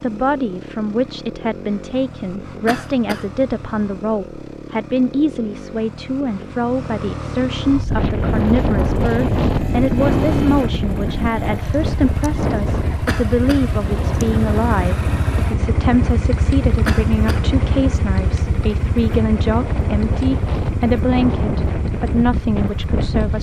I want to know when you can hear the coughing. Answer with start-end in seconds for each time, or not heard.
2.6-3.2, 13.1-13.7, 16.9-17.4.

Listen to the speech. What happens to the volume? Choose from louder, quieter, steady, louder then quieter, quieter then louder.
steady.